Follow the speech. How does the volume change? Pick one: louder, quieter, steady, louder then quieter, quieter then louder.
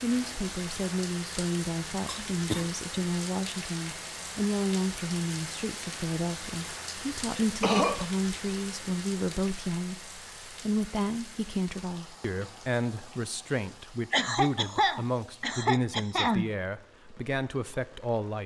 steady.